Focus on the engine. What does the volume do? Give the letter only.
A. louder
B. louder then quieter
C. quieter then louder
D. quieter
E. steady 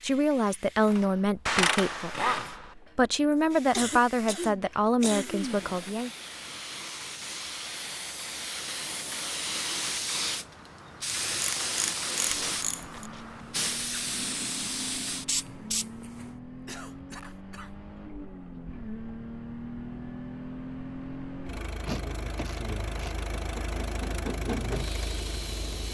A.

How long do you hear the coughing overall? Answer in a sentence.
The coughing can be heard for 3 seconds in total.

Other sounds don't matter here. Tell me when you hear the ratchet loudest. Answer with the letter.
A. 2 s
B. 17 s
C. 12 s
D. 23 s
A.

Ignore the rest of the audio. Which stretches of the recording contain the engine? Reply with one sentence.
You can hear the engine from 12.5 to 25.8 s.